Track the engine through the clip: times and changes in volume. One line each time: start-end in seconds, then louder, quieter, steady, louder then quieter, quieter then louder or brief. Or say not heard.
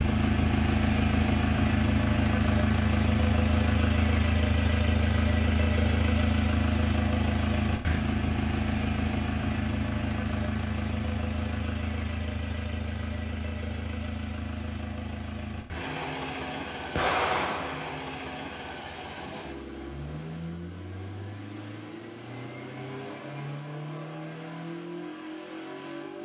0.0-26.1 quieter.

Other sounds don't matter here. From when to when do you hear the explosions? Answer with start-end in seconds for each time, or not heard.
16.9-17.9.